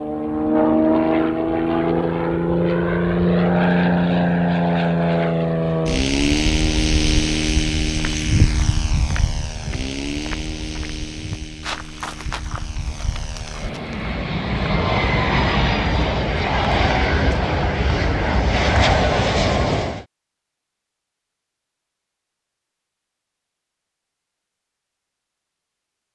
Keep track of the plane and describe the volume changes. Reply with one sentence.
The loudness of the plane goes down, then up.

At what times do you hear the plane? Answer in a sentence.
You can hear the plane from 0.0 to 20.1 s.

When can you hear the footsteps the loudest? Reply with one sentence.
The loudest moment of the footsteps is at 8 seconds.